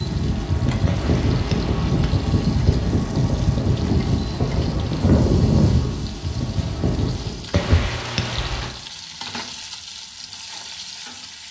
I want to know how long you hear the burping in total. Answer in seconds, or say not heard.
2 s.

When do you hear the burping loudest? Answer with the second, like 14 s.
8 s.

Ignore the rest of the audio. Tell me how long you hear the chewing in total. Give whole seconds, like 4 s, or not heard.
not heard.